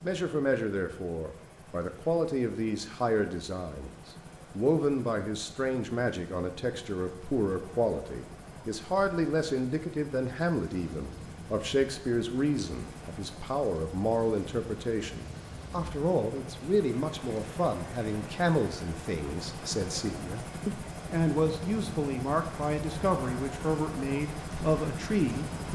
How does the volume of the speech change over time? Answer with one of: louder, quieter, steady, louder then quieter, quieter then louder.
steady.